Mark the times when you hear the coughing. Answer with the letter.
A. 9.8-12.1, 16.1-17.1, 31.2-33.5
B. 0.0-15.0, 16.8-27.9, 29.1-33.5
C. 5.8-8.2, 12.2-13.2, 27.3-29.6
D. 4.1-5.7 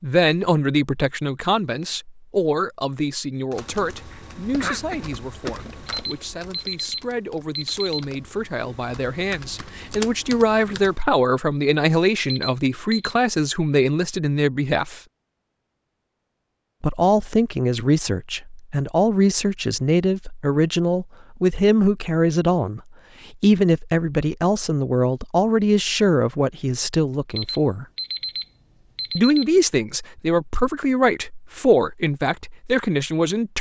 D.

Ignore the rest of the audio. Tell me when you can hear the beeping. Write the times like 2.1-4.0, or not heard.
5.8-8.2, 12.2-13.2, 27.3-29.6.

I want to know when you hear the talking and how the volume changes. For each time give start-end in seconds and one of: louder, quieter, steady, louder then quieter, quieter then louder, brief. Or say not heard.
0.0-15.0 quieter then louder
16.8-27.9 steady
29.1-33.5 steady.